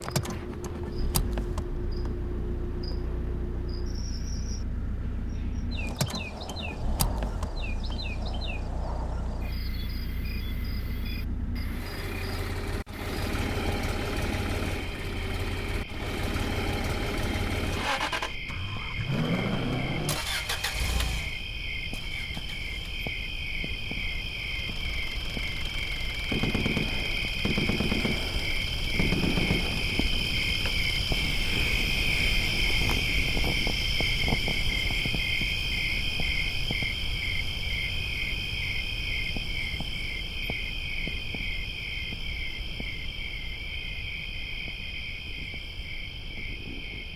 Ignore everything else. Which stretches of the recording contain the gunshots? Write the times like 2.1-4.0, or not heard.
26.3-29.9.